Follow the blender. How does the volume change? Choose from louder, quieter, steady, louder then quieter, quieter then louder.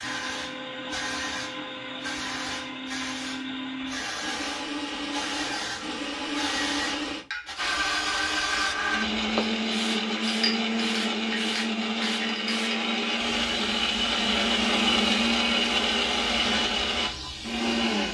louder.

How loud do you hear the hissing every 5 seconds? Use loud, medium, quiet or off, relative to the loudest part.
loud, loud, loud, medium.